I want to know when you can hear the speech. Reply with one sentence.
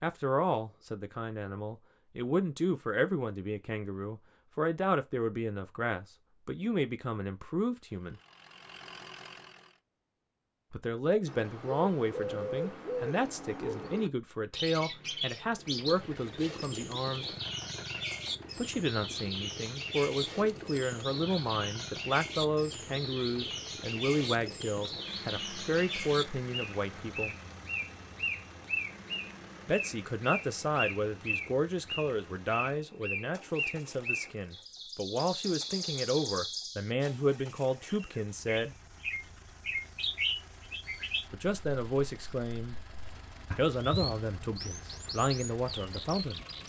The speech can be heard from 0.0 to 8.2 s, from 10.7 to 17.3 s, from 18.6 to 27.4 s, from 29.6 to 38.8 s, from 41.3 to 42.8 s and from 43.5 to 46.4 s.